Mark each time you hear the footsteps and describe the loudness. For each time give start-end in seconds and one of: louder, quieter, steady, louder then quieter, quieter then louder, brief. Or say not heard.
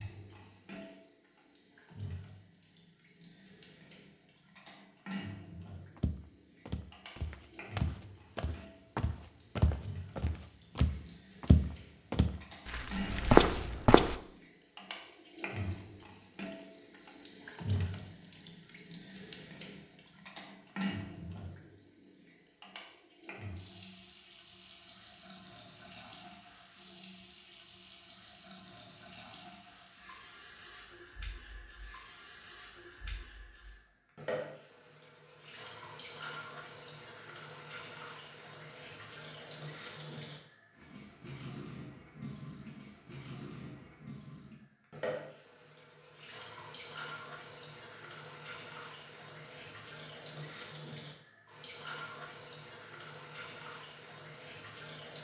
6.0-14.2 louder.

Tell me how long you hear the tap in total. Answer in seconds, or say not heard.
55 s.